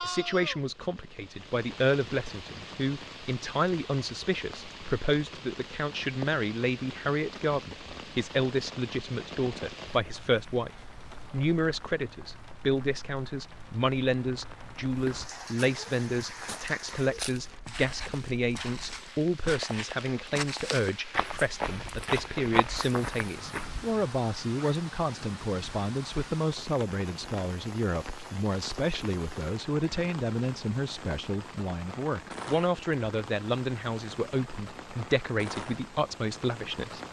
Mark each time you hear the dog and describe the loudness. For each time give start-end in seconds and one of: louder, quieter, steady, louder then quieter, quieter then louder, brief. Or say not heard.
not heard.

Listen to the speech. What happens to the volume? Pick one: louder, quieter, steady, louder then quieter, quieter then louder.
steady.